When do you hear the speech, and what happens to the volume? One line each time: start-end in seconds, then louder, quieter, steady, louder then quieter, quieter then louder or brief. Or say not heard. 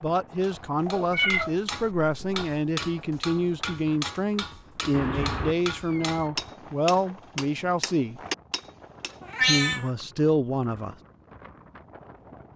0.0-8.2 steady
9.4-10.9 brief.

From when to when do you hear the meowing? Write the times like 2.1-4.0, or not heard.
0.8-2.5, 4.9-6.3, 9.3-9.8.